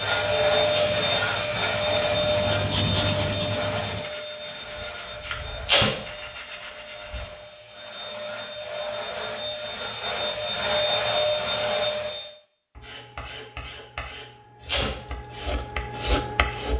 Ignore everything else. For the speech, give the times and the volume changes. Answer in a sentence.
The speech can't be heard in this clip.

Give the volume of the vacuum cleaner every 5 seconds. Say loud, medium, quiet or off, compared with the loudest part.
loud, medium, loud, off.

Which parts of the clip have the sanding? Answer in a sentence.
The sanding can be heard from 0.0 to 7.3 s and from 12.8 to 16.7 s.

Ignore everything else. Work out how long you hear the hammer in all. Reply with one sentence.
The hammer can't be heard in this clip.